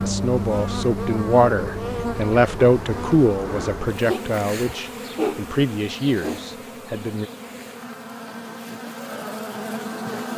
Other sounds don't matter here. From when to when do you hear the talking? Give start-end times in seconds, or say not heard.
0.0-7.3.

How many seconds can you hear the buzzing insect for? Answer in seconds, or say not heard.
10 s.